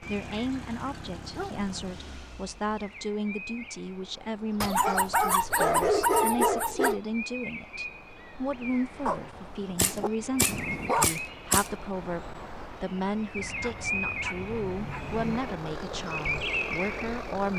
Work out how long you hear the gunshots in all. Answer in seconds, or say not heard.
2 s.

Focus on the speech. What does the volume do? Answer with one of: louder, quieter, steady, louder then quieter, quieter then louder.
steady.